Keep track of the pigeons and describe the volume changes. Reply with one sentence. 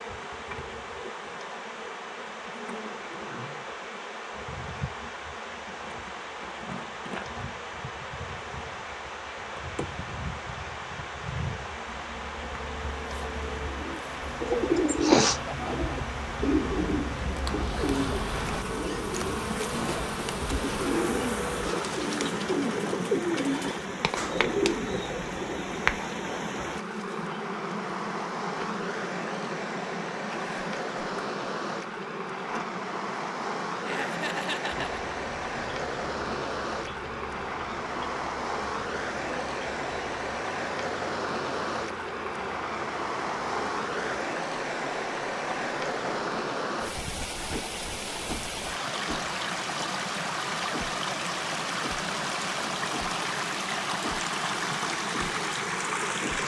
The volume of the pigeons goes down, then up.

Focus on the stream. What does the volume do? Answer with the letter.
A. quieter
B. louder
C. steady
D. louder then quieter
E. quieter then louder
B.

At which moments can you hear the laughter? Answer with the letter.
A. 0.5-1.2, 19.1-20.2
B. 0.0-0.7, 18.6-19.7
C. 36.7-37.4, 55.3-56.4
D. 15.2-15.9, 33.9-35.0
D.